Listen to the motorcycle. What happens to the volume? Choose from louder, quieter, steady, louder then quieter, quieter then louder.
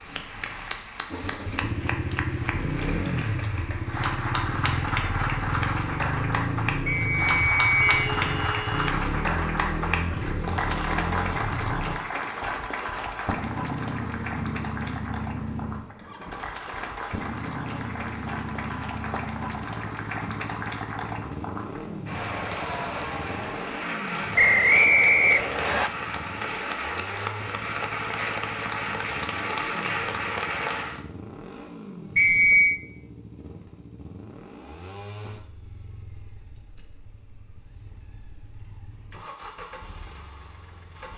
quieter.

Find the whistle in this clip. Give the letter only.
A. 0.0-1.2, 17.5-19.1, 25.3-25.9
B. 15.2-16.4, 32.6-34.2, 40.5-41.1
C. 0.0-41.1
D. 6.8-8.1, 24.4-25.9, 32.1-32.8
D.